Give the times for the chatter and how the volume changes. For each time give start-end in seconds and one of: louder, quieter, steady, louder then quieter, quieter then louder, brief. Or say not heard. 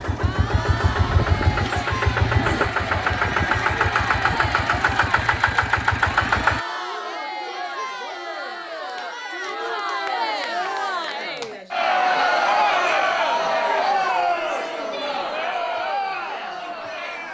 0.1-17.2 louder.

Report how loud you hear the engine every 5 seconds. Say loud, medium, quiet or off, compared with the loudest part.
loud, loud, off, off.